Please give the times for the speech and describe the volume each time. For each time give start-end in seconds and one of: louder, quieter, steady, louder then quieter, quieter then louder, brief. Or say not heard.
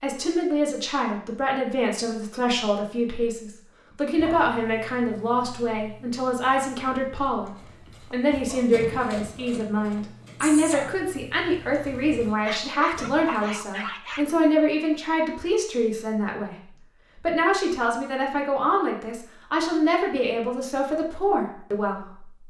0.0-22.4 steady.